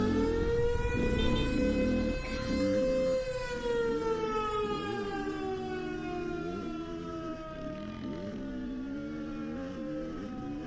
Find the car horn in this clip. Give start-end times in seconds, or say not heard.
0.4-1.5.